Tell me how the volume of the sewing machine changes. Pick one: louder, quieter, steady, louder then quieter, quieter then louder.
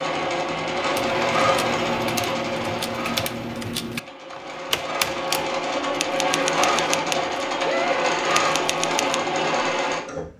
quieter then louder.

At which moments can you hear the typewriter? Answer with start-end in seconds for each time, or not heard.
0.9-9.2.